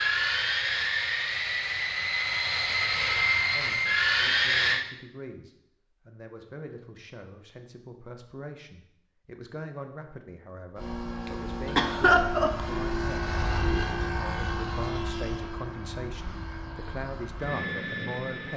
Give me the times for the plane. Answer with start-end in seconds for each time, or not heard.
0.0-4.8, 10.8-18.5.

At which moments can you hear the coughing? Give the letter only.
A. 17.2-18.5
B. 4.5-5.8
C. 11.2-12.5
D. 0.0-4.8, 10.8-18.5
C.